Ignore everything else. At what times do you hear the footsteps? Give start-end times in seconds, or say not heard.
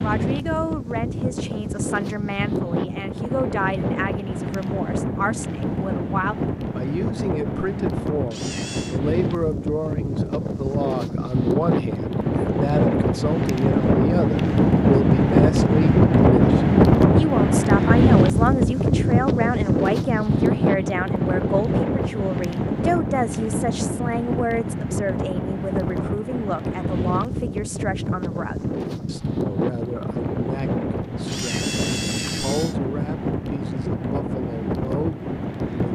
not heard.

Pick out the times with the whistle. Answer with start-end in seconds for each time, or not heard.
not heard.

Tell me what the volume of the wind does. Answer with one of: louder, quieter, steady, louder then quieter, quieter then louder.
louder then quieter.